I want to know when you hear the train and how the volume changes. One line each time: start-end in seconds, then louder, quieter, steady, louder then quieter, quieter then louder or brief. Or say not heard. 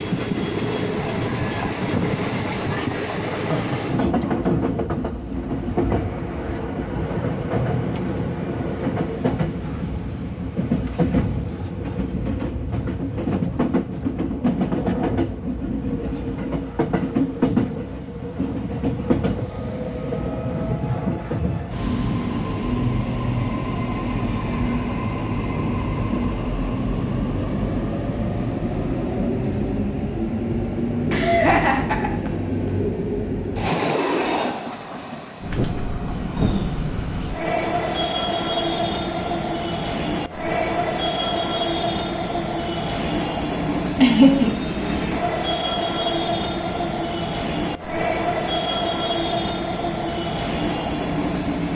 0.0-51.6 steady.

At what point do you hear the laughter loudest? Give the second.
44 s.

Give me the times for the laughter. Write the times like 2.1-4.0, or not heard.
3.4-4.0, 31.1-32.3, 44.0-44.6.